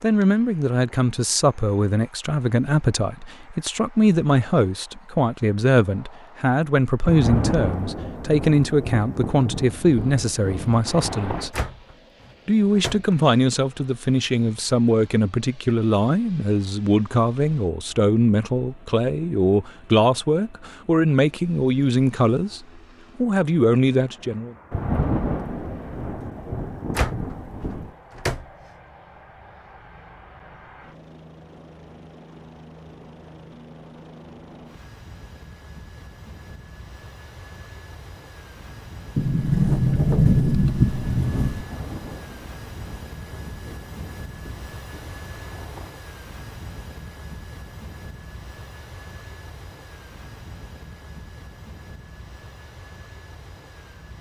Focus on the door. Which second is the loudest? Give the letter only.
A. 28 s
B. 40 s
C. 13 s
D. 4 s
B.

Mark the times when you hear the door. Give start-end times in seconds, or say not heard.
11.5-13.1, 26.9-28.4, 39.1-41.6.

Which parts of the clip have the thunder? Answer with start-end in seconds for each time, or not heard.
7.0-11.5, 24.7-27.9, 41.5-46.0.